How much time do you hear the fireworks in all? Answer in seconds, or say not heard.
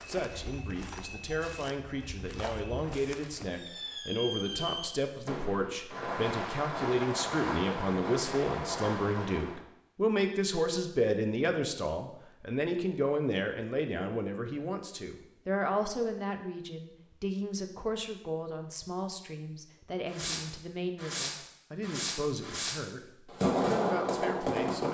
11 s.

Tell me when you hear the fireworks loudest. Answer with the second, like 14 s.
24 s.